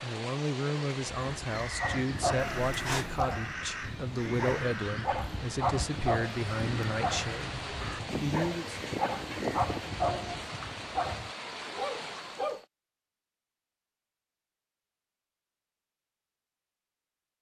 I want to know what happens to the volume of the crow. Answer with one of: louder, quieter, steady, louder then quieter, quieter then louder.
steady.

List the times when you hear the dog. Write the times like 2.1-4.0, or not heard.
1.8-12.6.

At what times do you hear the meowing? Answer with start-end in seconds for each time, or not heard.
2.4-3.3.